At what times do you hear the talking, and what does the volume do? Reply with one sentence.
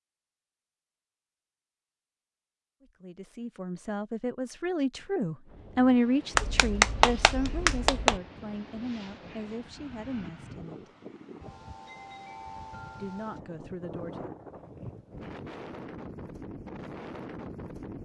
The talking can be heard from 2.8 to 10.8 s, getting louder then quieter; and briefly from 13.0 to 14.3 s.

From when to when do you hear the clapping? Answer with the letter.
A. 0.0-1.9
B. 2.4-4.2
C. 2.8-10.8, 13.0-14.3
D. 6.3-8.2
D.